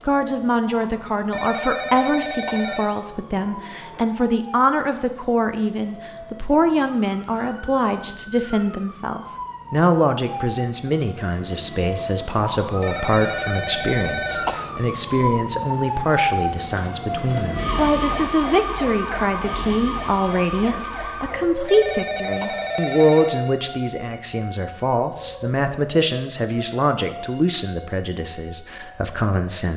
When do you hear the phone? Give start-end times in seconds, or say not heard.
1.3-3.0, 12.8-14.6, 21.6-23.4.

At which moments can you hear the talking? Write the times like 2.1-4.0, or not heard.
0.1-29.7.